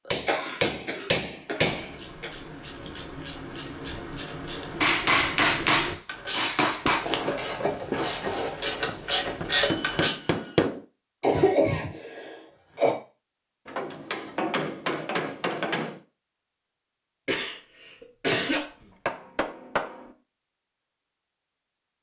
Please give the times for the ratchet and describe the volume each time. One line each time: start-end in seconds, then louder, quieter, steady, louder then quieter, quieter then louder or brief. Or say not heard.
1.6-10.2 louder.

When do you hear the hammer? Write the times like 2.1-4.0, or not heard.
0.1-1.9, 4.8-7.2, 8.8-10.8, 13.7-16.0, 18.4-20.1.